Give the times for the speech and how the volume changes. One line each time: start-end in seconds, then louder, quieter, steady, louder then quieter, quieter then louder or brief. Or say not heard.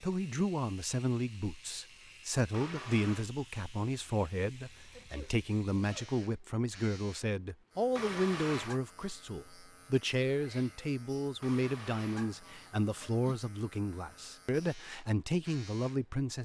0.0-16.4 steady.